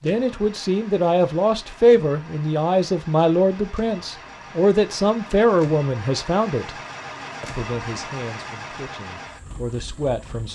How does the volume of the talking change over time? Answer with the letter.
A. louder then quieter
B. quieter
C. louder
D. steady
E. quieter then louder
B.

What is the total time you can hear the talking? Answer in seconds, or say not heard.
10 s.